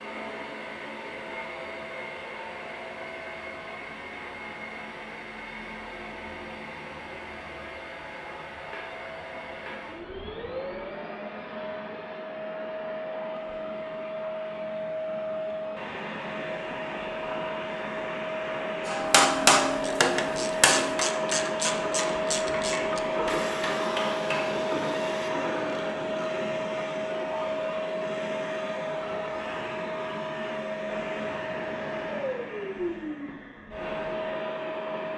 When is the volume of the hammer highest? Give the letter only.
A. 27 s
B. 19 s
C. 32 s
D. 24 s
B.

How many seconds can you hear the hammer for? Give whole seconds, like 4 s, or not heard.
6 s.